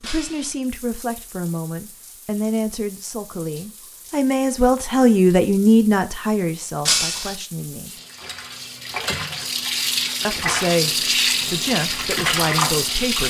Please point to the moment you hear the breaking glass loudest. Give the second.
7 s.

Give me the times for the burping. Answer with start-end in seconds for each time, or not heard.
not heard.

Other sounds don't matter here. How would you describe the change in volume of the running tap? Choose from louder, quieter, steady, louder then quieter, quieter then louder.
louder.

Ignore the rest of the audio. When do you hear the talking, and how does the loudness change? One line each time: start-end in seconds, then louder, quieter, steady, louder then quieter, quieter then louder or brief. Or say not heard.
0.0-7.9 louder then quieter
10.2-13.2 brief.